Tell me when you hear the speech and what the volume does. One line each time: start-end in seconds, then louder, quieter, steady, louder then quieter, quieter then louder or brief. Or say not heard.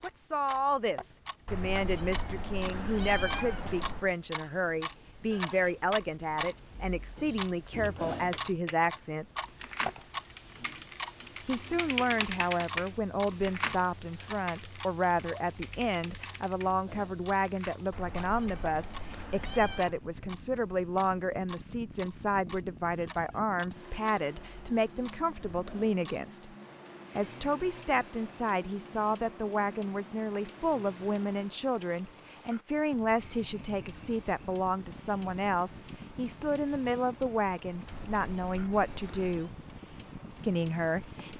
0.0-9.2 steady
11.4-26.6 steady
27.1-39.5 steady
40.4-41.3 brief.